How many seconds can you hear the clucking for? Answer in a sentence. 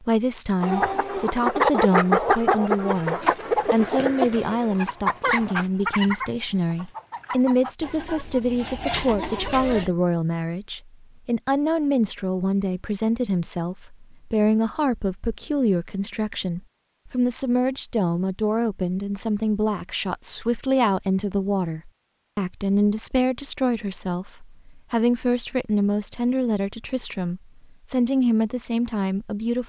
You can hear the clucking for 9 seconds altogether.